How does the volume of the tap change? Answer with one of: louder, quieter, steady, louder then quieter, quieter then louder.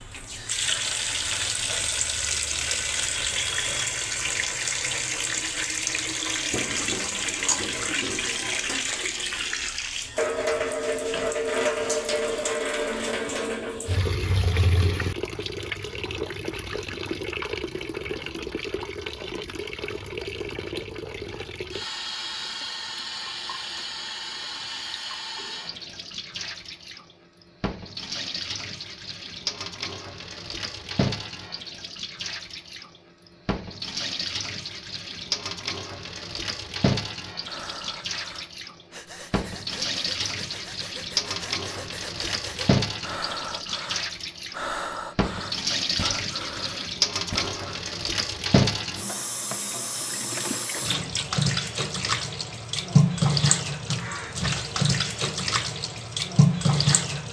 quieter then louder.